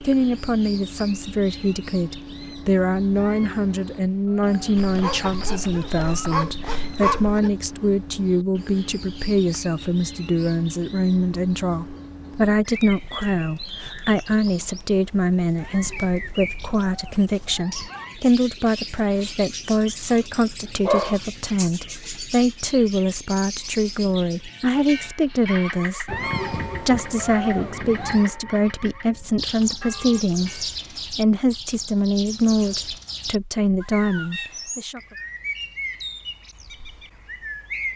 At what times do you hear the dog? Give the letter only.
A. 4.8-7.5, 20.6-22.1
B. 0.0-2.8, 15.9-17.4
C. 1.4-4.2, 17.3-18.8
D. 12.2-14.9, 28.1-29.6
A.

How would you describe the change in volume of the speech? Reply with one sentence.
The loudness of the speech stays about the same.